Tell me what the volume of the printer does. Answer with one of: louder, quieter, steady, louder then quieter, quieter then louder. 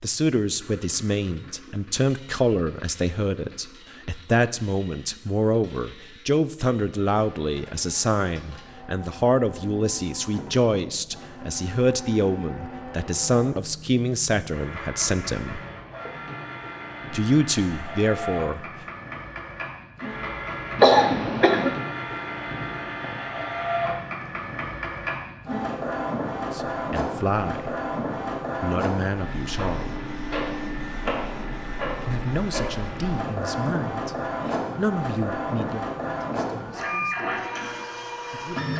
louder.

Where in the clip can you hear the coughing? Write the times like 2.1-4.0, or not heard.
20.8-21.8.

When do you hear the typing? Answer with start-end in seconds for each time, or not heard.
not heard.